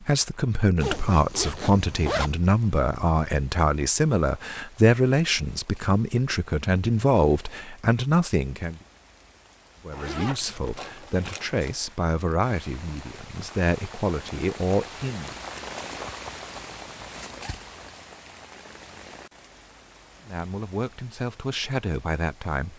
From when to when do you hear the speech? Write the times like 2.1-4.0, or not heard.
0.0-8.8, 9.8-15.3, 20.2-22.7.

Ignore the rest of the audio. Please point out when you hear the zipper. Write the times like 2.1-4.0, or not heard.
0.8-2.4, 9.9-11.7, 16.2-17.6.